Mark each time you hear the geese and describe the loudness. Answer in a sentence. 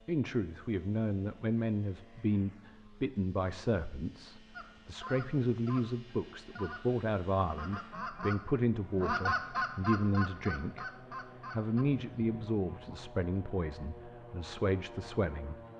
The geese can be heard from 4.5 to 13.0 s, getting louder then quieter.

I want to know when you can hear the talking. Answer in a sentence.
You can hear the talking from 0.1 to 10.8 s and from 11.5 to 15.6 s.